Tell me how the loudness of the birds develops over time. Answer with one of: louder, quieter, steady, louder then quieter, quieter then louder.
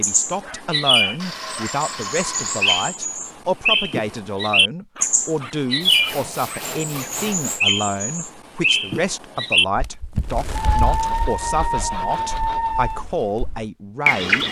quieter.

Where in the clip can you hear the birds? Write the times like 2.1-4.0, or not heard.
0.0-14.4.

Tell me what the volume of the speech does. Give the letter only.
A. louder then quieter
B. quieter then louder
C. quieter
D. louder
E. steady
E.